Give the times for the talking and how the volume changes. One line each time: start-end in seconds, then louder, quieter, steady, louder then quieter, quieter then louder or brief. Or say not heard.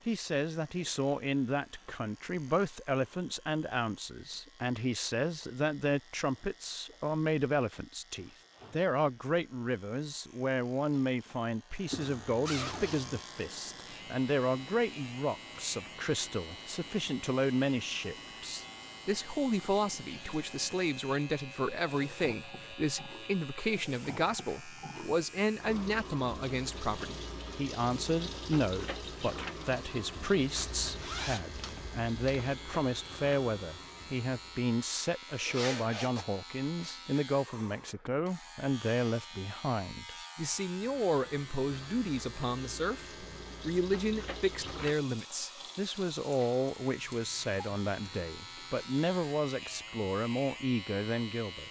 0.1-51.6 steady.